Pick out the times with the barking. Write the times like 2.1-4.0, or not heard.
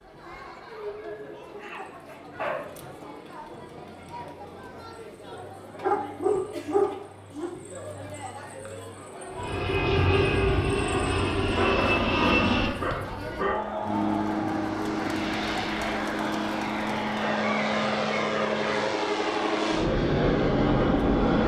1.6-2.7, 5.8-7.5, 11.4-13.7, 16.7-18.9.